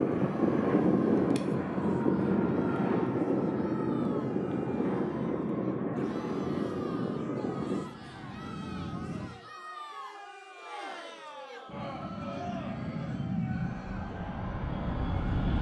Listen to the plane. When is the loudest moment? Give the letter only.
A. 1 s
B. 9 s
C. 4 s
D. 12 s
A.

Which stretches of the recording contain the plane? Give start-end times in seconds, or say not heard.
0.0-9.3, 11.7-15.5.